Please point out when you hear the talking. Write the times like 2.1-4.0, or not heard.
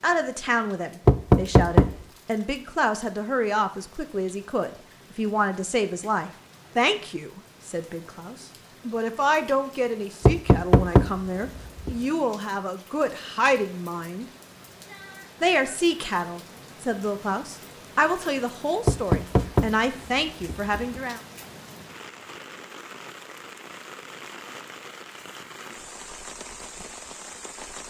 0.0-14.2, 15.4-21.2.